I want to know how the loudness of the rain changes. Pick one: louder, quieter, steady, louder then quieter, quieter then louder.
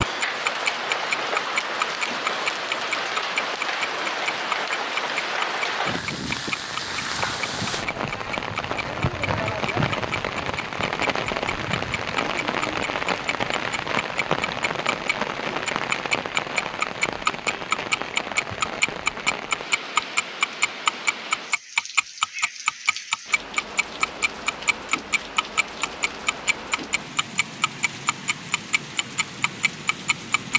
quieter.